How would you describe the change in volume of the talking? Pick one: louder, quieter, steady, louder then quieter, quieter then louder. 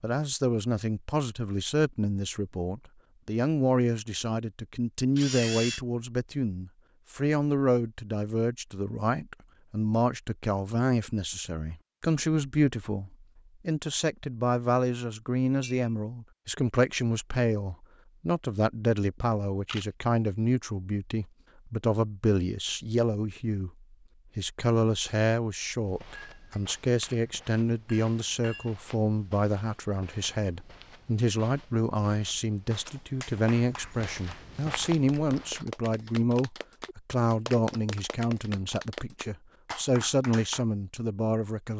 steady.